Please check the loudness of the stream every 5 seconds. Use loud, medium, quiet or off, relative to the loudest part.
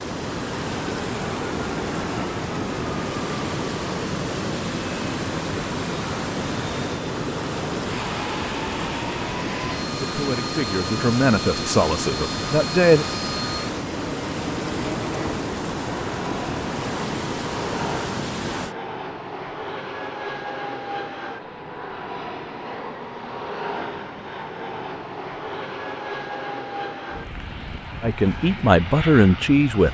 loud, loud, loud, loud, off, off.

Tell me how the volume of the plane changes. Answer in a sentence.
The loudness of the plane stays about the same.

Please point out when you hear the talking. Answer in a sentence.
You can hear the talking from 10.0 to 13.1 s and from 28.0 to 29.8 s.